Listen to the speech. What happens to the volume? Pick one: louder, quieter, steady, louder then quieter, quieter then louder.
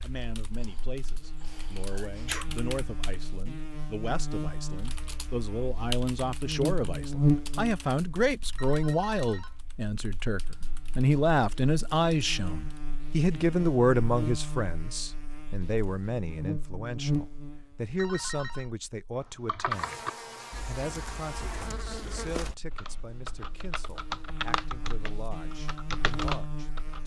louder then quieter.